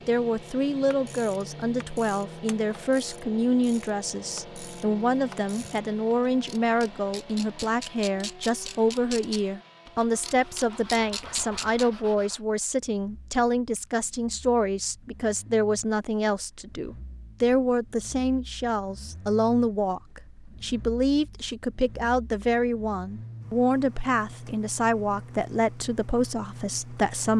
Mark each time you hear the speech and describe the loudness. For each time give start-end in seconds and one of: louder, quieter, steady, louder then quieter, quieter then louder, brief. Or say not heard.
0.1-27.3 steady.